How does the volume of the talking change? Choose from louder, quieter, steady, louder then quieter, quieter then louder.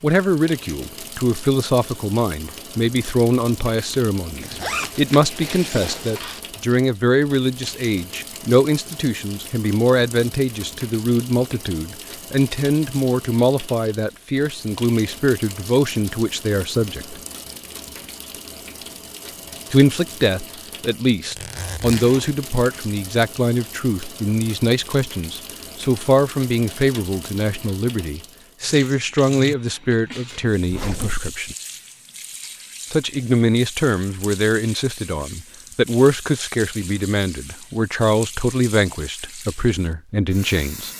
steady.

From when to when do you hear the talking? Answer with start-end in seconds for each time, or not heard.
0.0-17.2, 19.7-31.6, 32.9-40.9.